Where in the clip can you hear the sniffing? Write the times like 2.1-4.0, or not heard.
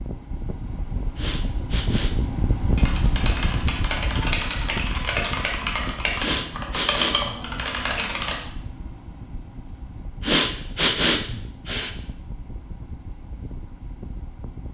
1.1-2.2, 6.2-7.3, 10.2-11.9.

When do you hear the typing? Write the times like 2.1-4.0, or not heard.
2.8-8.3.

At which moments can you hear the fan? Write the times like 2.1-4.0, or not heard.
0.0-14.6.